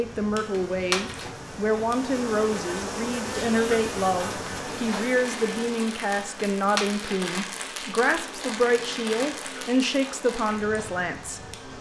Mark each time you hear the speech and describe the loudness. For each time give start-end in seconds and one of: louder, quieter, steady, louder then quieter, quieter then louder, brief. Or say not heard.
0.0-11.7 steady.